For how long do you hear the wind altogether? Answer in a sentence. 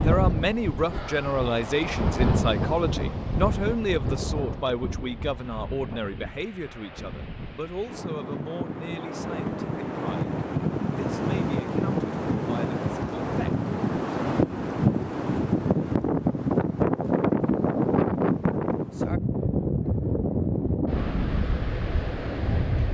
The wind can be heard for 23 seconds in total.